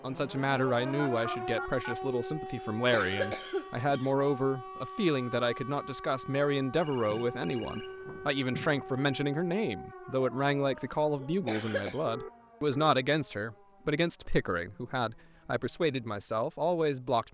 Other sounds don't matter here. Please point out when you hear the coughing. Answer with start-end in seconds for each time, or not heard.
2.9-4.1, 11.2-12.1.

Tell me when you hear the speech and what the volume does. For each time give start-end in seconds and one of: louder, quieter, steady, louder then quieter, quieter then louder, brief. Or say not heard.
0.0-17.2 steady.